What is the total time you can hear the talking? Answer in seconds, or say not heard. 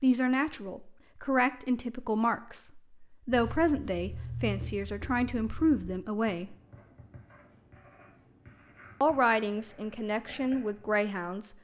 9 s.